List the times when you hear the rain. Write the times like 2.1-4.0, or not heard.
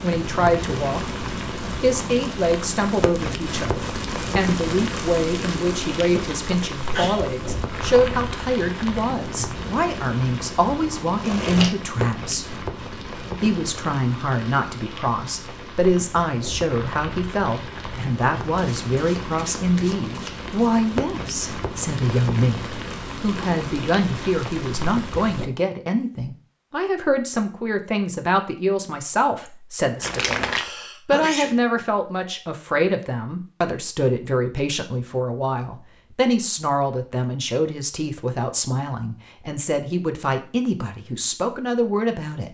0.0-25.5.